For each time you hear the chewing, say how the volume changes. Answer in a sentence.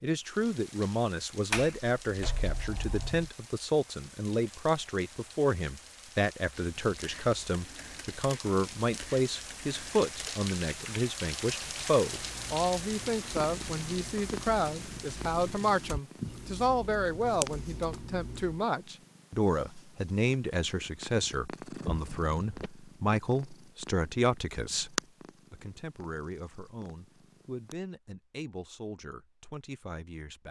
The chewing can't be heard in this clip.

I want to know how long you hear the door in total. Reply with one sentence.
The door can be heard for 3 seconds in total.